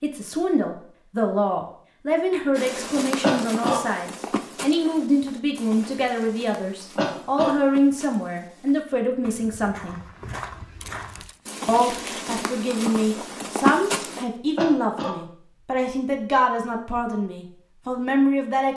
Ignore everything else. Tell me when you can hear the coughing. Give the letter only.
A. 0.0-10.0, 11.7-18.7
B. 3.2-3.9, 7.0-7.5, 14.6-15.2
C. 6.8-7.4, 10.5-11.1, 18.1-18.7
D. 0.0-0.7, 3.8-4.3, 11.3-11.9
B.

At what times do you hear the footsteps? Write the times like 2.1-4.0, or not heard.
2.5-14.2.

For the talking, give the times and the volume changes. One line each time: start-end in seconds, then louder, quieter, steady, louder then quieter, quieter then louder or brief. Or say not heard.
0.0-10.0 steady
11.7-18.7 steady.